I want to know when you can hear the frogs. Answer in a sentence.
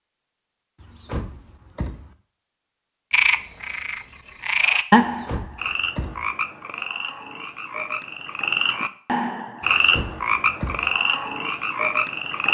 You can hear the frogs from 3.1 to 12.5 s.